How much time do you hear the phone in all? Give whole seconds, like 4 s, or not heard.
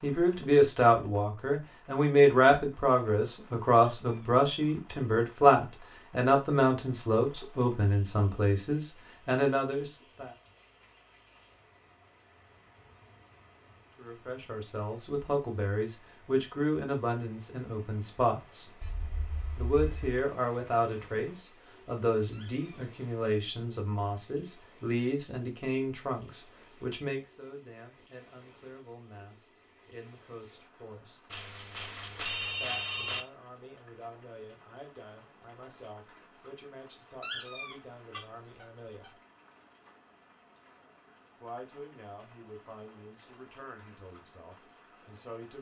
3 s.